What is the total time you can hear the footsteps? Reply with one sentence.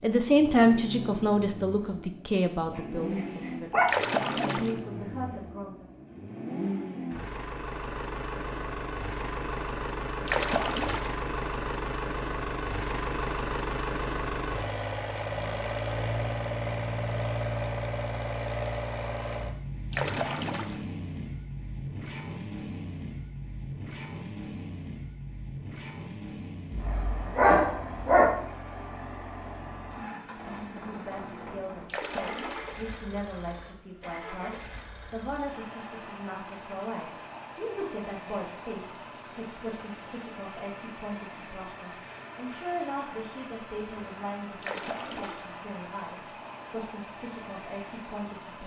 The footsteps can't be heard in this clip.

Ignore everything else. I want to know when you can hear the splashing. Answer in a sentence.
The splashing can be heard from 3.9 to 4.8 s, from 10.2 to 11.2 s, from 19.9 to 20.9 s, from 31.9 to 32.8 s and from 44.6 to 45.5 s.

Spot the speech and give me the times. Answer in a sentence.
The speech can be heard from 0.0 to 5.8 s and from 30.9 to 48.6 s.